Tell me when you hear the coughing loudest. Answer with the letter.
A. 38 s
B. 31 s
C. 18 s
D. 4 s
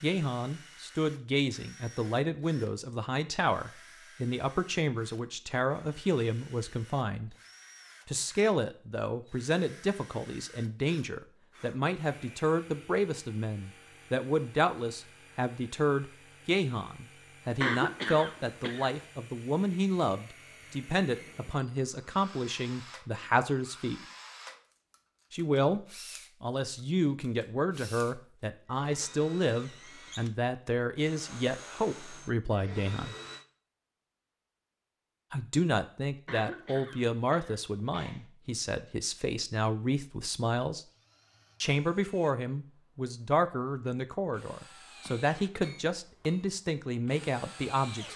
C.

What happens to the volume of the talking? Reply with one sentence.
The volume of the talking stays about the same.